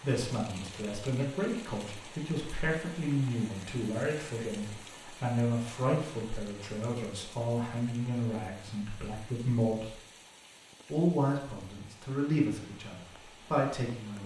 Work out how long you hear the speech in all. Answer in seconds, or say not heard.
13 s.